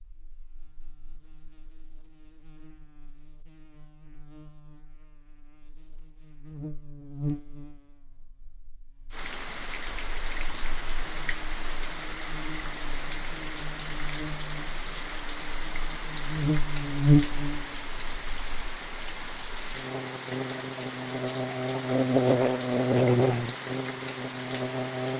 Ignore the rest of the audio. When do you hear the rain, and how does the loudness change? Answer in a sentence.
The rain can be heard from 9.1 to 25.1 s, at a steady volume.